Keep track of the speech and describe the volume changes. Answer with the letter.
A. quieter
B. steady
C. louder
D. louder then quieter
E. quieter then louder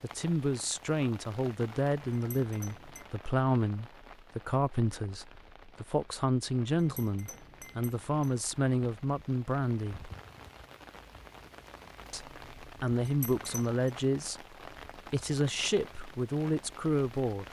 B.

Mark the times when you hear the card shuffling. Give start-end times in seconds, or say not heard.
not heard.